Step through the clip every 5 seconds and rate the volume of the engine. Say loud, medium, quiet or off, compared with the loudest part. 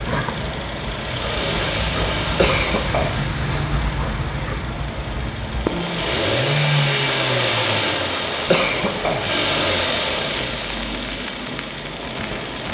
medium, loud, medium.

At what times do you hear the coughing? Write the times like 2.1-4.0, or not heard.
2.4-3.7, 8.4-9.6.